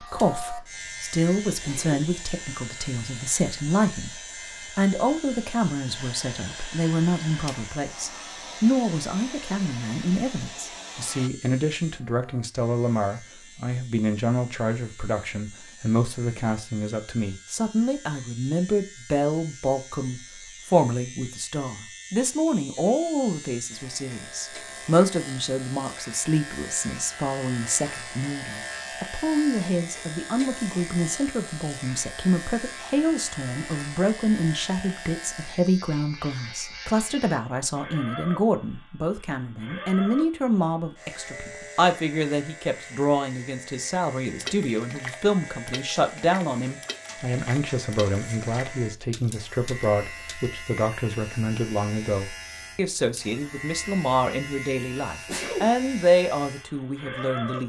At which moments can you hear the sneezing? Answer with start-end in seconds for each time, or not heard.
1.6-2.0, 55.2-55.8.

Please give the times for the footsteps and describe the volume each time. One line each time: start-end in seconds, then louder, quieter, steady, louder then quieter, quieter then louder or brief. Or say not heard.
not heard.